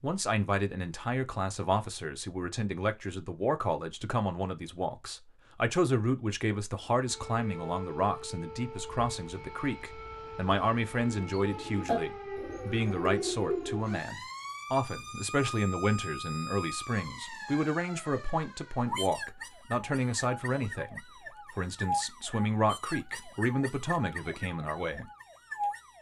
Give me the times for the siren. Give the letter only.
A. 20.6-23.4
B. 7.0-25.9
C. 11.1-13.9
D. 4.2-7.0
B.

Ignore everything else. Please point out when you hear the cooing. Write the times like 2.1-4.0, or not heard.
11.1-13.9.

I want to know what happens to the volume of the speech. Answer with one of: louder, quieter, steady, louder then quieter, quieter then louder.
steady.